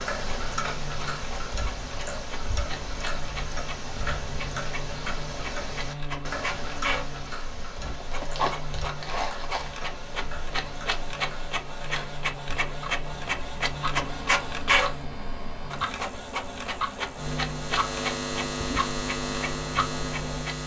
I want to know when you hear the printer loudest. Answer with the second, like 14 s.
14 s.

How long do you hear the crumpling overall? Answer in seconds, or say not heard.
2 s.